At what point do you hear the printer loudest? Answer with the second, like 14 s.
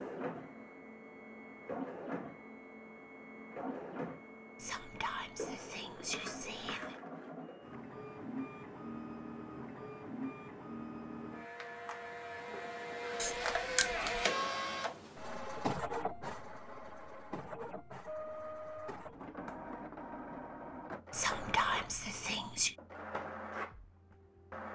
14 s.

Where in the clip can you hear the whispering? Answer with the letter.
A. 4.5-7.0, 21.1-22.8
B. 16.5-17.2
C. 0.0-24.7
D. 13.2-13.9
A.